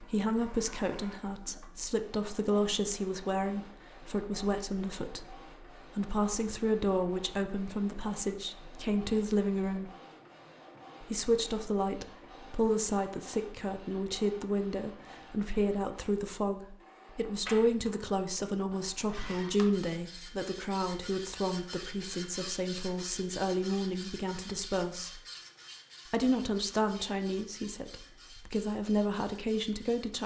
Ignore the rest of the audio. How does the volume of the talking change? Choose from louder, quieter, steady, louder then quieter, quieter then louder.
steady.